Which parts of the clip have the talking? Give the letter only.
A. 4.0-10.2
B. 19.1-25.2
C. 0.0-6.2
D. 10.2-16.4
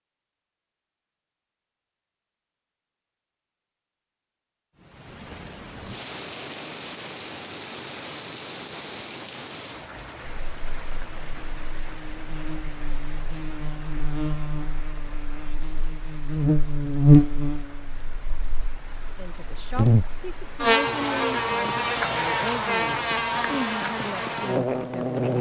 B.